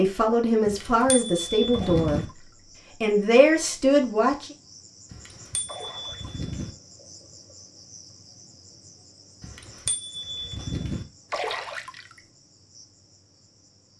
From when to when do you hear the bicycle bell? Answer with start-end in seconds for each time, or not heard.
0.7-2.2, 5.1-6.7, 9.4-11.1.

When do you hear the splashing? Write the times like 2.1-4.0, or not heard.
1.7-2.6, 5.7-6.4, 11.3-12.2.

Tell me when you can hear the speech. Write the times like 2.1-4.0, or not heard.
0.0-4.5.